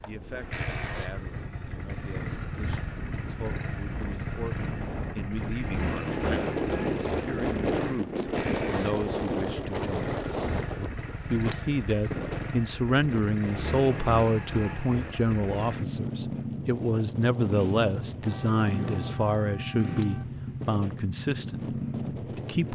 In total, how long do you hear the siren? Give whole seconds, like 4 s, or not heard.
not heard.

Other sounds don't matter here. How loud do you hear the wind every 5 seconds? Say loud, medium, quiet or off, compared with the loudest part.
medium, loud, medium, quiet, quiet.